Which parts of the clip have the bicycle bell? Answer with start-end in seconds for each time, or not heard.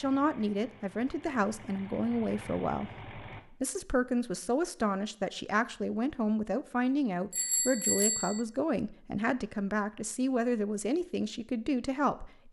7.3-8.4.